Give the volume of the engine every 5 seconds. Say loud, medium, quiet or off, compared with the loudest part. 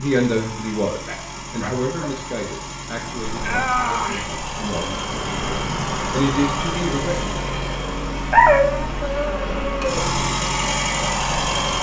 medium, medium, loud.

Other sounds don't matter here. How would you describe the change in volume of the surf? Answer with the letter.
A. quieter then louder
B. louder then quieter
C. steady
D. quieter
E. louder
D.